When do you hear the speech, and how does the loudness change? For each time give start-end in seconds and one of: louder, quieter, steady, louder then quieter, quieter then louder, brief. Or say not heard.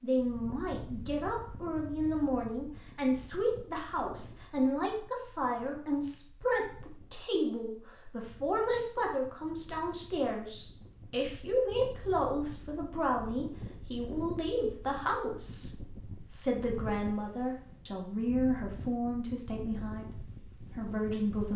0.0-21.5 steady.